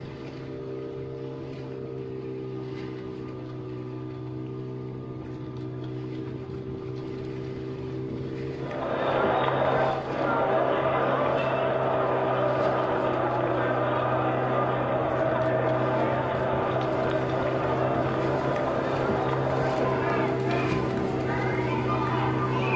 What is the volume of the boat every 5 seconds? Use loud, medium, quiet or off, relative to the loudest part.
medium, medium, loud, loud, loud.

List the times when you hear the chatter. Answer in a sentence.
The chatter can be heard from 8.6 to 22.7 s.